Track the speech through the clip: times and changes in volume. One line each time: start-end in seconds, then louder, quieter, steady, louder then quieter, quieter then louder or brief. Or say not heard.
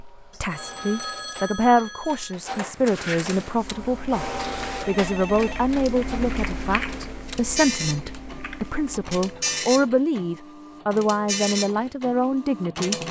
0.2-12.9 steady.